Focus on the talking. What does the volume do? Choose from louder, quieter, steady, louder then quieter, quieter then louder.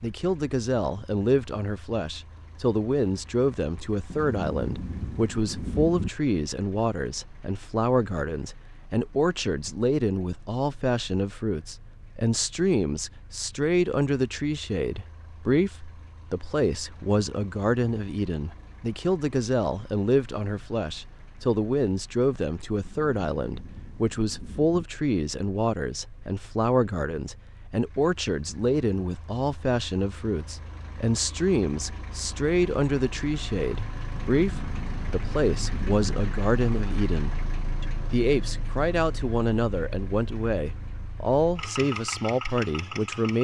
steady.